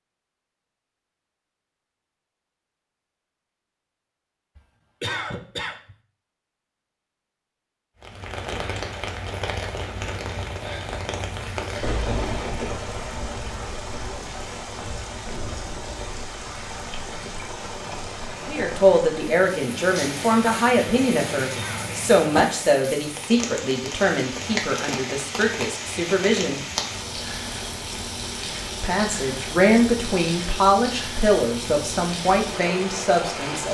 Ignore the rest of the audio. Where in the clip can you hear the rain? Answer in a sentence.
You can hear the rain from 8.0 to 33.6 s.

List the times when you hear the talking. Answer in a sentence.
You can hear the talking from 18.4 to 26.6 s and from 28.8 to 33.6 s.